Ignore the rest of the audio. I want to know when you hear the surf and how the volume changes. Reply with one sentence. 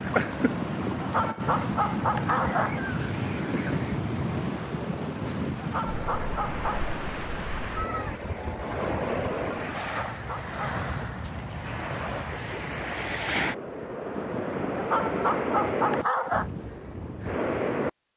The surf can be heard from 0.0 to 17.9 s, at a steady volume.